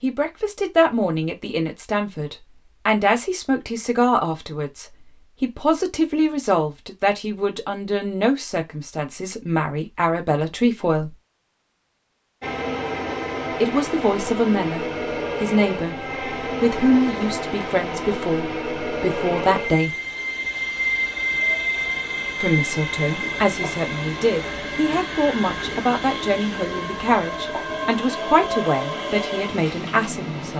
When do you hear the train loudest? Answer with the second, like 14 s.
21 s.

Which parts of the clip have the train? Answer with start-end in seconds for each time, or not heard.
12.4-30.5.